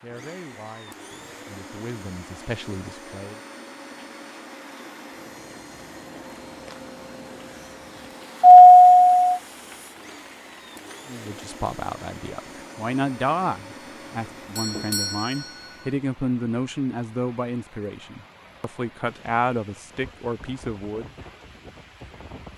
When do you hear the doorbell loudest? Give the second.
9 s.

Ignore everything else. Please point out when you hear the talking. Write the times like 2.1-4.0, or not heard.
0.0-3.4, 11.1-21.1.